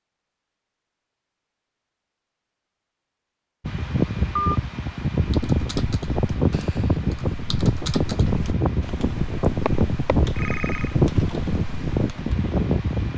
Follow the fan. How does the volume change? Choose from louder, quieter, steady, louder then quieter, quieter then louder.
steady.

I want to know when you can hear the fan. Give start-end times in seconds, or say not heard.
3.6-13.1.